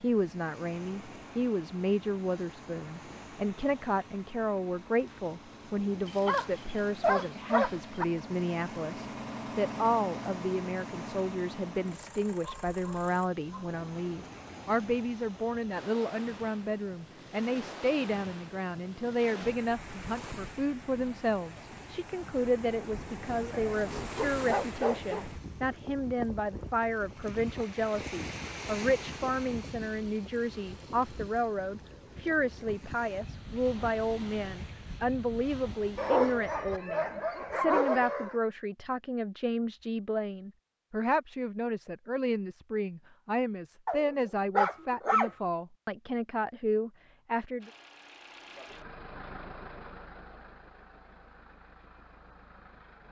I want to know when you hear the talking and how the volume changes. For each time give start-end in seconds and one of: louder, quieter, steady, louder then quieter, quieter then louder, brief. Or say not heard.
0.0-47.7 steady.